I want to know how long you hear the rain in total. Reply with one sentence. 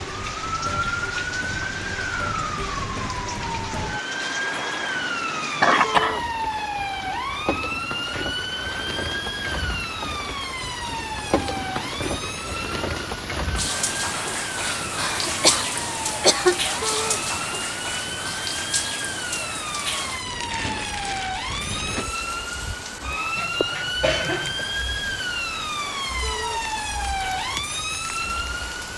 The rain can be heard for 29 seconds in total.